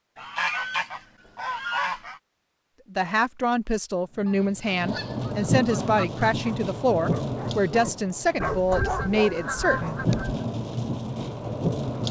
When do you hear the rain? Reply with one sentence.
The rain can be heard from 4.0 to 12.0 s.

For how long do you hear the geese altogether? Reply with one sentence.
The geese can be heard for 6 seconds in total.